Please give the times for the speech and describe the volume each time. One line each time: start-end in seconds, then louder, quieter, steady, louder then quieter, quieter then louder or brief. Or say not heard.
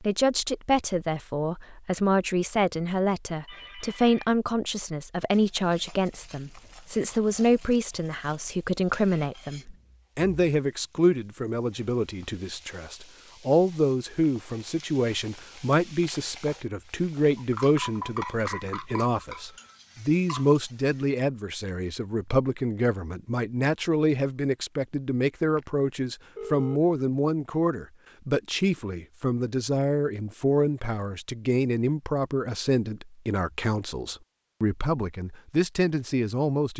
0.0-36.7 steady.